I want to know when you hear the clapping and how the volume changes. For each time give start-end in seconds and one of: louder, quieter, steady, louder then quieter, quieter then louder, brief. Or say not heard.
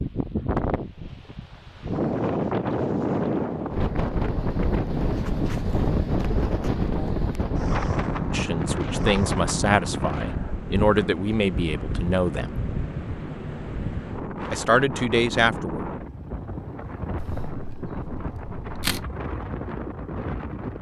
not heard.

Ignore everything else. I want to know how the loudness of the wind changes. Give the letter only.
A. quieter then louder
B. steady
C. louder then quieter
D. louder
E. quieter
E.